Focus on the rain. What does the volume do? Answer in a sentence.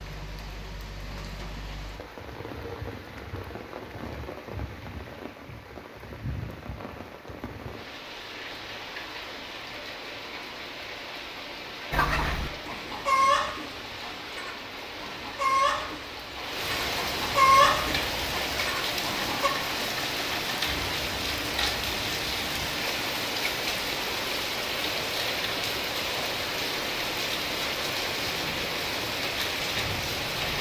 The volume of the rain goes up.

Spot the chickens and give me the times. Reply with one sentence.
You can hear the chickens from 11.9 to 19.5 s.